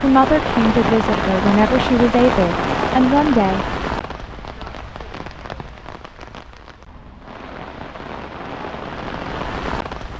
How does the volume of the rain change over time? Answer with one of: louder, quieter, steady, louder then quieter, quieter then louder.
quieter then louder.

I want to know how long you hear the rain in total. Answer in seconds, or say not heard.
10 s.